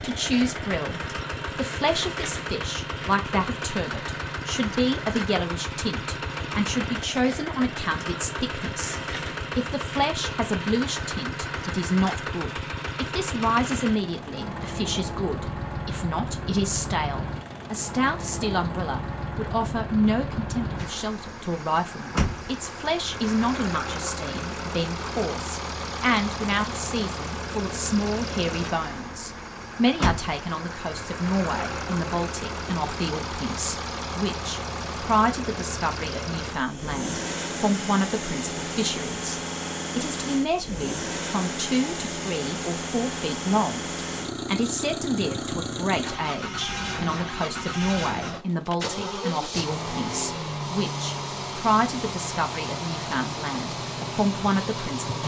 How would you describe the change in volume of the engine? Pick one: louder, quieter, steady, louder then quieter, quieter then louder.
steady.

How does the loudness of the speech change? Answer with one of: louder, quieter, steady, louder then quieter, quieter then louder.
steady.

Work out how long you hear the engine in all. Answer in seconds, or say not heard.
55 s.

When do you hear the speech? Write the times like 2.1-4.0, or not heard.
0.0-43.9, 44.5-55.1.